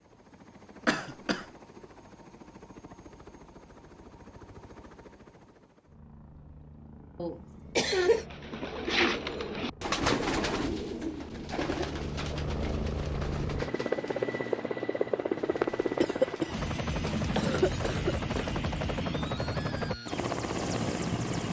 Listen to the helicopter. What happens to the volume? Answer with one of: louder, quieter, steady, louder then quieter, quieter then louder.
louder.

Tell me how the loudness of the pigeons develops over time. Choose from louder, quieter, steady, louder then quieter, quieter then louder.
quieter.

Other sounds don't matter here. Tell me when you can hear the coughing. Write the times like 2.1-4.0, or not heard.
0.8-1.4, 7.2-8.2, 16.0-18.6.